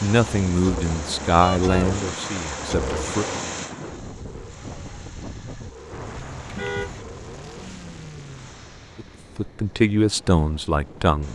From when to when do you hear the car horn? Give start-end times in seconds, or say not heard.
1.4-1.9, 6.5-7.0.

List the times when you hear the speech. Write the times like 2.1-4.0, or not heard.
0.0-3.2, 8.9-11.2.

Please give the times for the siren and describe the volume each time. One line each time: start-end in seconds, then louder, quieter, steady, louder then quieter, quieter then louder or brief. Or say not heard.
not heard.